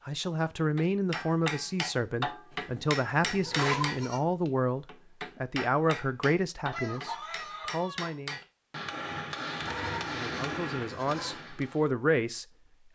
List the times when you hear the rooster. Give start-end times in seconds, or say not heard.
6.7-8.2.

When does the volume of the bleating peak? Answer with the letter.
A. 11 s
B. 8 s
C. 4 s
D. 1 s
C.